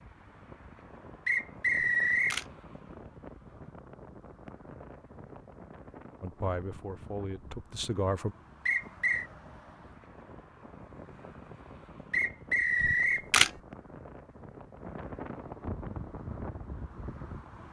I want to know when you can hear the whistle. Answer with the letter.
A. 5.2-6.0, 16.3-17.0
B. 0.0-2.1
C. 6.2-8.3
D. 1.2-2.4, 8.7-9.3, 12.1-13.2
D.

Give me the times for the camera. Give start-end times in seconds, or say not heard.
1.8-2.5, 12.8-13.5.